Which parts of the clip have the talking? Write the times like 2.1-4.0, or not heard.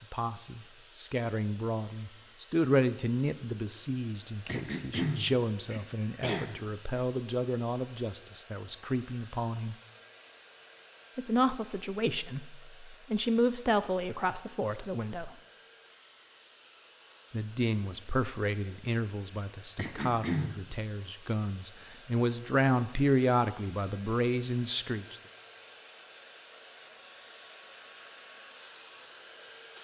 0.0-9.8, 11.2-15.3, 17.3-25.1.